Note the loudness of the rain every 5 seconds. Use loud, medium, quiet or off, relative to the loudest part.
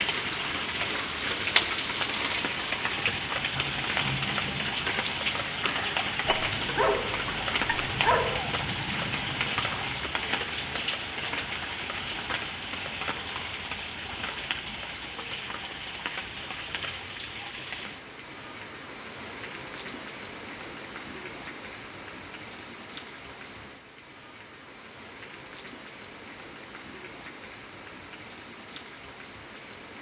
loud, loud, medium, medium, quiet, quiet.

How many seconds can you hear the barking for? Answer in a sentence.
You can hear the barking for 2 seconds altogether.